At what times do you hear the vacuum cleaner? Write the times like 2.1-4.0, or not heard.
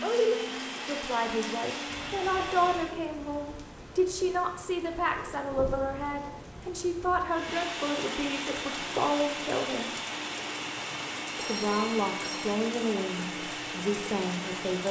0.0-3.0, 7.2-14.8.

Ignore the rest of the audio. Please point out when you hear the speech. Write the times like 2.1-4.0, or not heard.
0.0-9.9, 11.3-14.8.